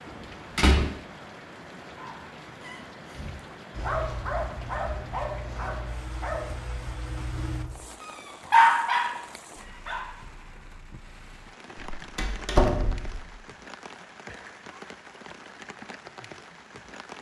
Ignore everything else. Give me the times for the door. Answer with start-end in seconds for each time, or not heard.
0.1-0.9, 11.9-13.3.